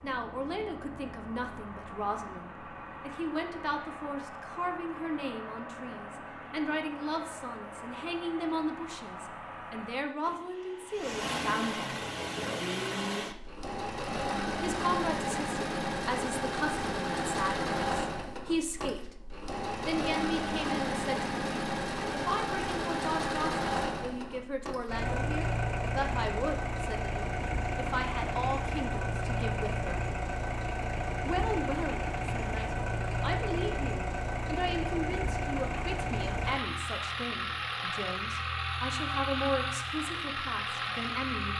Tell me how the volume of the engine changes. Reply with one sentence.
The loudness of the engine goes up.